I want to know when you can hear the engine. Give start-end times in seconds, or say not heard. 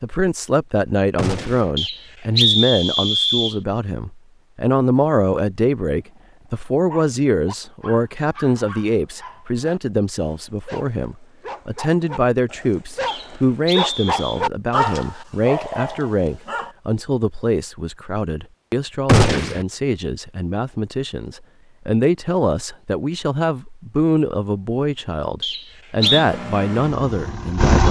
25.9-27.8.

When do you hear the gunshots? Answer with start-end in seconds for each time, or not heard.
1.1-1.7, 19.1-19.6.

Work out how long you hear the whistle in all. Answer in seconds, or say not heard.
4 s.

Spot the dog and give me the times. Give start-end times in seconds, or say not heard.
6.0-16.8.